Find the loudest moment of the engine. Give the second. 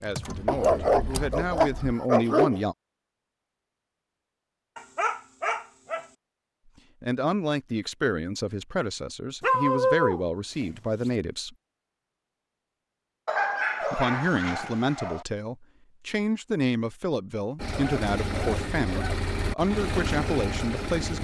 20 s.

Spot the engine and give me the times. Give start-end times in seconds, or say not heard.
0.0-1.9, 17.6-21.1.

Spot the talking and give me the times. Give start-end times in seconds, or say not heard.
0.0-2.8, 7.0-11.6, 13.9-21.1.